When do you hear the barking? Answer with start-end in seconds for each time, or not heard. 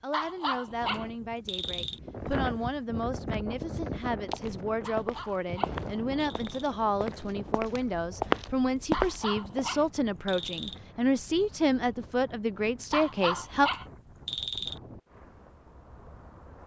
0.1-2.0, 4.8-6.7, 8.9-10.8, 12.9-14.8.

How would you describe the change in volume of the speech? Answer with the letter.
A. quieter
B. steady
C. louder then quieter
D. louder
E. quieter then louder
D.